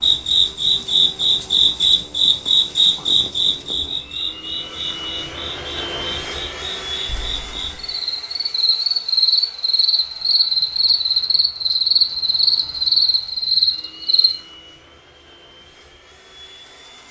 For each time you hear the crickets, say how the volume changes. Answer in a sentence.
The crickets can be heard from 0.0 to 14.3 s, getting quieter then louder.